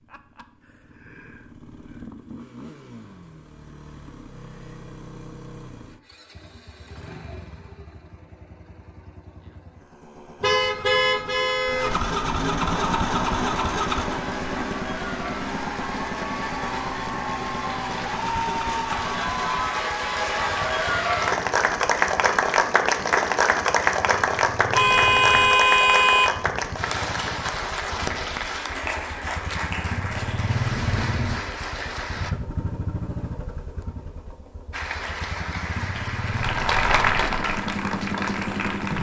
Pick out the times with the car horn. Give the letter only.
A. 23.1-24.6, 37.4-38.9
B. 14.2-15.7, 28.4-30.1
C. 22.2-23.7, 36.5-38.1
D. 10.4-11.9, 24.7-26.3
D.